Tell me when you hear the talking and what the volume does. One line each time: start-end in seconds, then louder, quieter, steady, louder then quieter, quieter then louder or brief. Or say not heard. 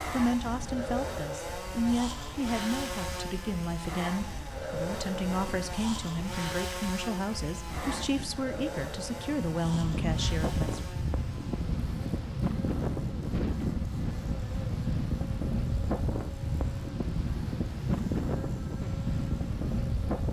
0.1-10.9 steady.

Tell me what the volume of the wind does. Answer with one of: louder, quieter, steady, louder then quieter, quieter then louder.
louder.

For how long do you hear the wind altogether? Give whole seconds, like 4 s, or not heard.
20 s.